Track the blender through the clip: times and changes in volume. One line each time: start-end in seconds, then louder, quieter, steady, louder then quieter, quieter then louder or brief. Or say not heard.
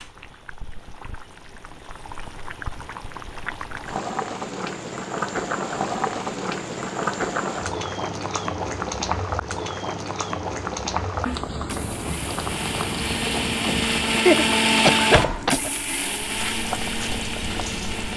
11.2-18.1 louder then quieter.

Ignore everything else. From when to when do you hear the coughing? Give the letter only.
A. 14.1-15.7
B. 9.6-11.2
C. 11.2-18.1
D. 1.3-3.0
A.